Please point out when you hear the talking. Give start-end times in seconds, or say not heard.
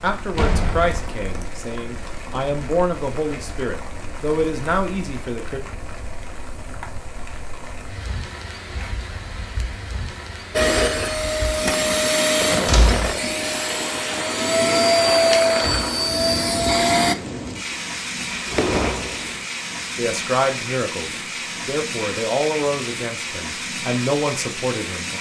0.0-5.6, 19.9-25.1.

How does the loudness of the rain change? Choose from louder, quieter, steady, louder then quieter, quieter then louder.
louder.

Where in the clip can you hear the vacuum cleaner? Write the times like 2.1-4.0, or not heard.
10.5-17.1.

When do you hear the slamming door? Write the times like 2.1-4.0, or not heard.
0.3-1.6, 12.7-13.1, 17.7-19.4.